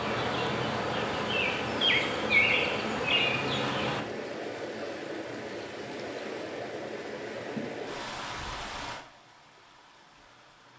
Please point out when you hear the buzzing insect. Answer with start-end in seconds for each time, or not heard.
0.0-4.0.